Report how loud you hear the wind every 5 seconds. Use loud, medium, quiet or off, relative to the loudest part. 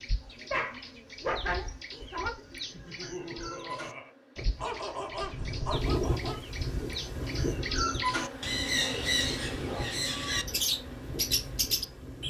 off, loud, medium.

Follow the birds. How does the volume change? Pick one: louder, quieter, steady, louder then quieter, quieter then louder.
louder.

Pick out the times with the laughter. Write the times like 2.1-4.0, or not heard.
2.7-4.2.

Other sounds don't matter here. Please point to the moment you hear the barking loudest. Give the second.
1 s.